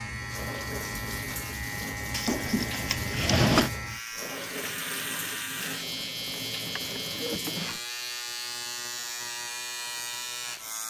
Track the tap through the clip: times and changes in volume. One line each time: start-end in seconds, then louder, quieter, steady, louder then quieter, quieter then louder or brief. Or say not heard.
0.1-7.8 steady.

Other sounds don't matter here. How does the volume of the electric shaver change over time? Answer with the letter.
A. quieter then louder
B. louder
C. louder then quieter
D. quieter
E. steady
E.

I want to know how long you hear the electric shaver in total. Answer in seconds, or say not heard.
11 s.